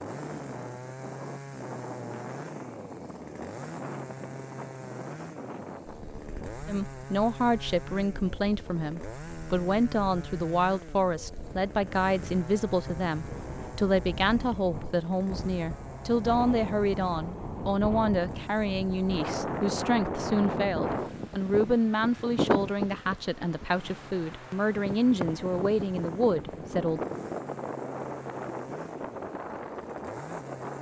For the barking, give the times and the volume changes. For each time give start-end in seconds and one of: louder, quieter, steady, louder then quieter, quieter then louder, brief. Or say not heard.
not heard.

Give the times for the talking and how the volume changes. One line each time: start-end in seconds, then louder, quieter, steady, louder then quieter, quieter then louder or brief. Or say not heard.
6.7-27.0 steady.